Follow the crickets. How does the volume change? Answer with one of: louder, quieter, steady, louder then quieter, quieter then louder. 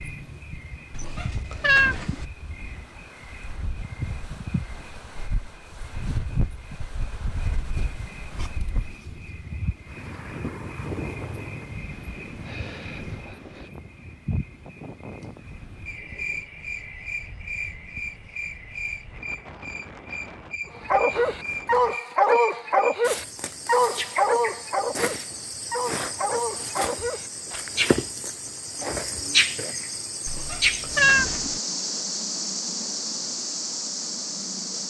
louder.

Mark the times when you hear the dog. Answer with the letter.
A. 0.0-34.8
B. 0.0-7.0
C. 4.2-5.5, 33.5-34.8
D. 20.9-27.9
D.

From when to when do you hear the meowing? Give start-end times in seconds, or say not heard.
0.9-2.2, 30.2-31.6.